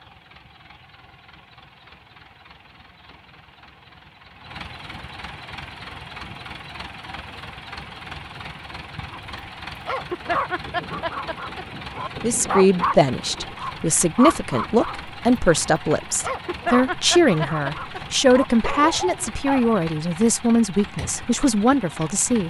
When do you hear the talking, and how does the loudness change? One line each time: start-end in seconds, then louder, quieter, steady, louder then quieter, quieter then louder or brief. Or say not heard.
12.2-22.4 steady.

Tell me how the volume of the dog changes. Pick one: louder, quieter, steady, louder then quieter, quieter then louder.
steady.